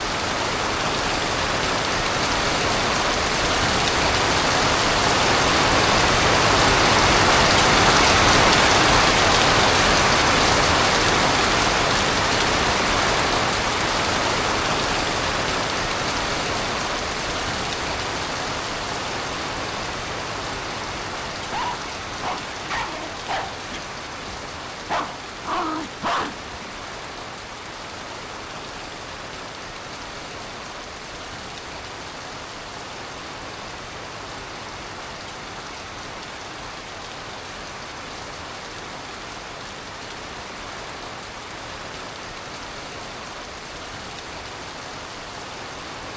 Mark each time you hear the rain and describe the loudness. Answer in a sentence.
You can hear the rain from 0.0 to 46.1 s, getting quieter.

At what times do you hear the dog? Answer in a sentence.
You can hear the dog from 21.4 to 26.5 s.